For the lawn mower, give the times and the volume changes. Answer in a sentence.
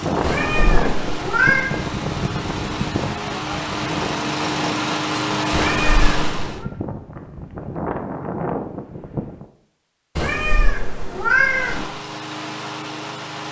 You can hear the lawn mower from 0.0 to 6.7 s, getting louder; and briefly from 11.2 to 13.4 s.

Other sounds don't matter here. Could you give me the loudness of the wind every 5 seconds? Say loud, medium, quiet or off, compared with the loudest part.
loud, loud, off.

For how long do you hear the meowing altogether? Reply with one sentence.
The meowing can be heard for 4 seconds in total.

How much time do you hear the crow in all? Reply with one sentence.
You can't hear the crow here.